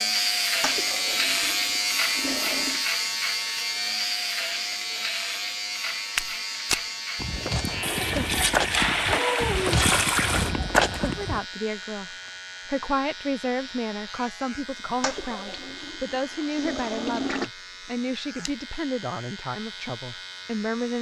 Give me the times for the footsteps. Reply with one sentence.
The footsteps can be heard from 6.2 to 11.4 s.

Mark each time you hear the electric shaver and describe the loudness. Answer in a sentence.
You can hear the electric shaver from 0.0 to 20.9 s, getting quieter.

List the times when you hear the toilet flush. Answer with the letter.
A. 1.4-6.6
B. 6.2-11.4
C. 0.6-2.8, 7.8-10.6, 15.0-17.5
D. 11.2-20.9
C.